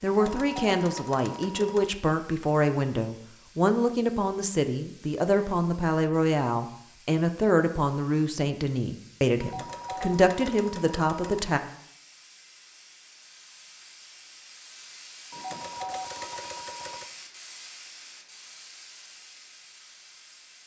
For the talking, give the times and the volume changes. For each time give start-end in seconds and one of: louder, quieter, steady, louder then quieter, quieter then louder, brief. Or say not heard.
0.0-11.6 steady.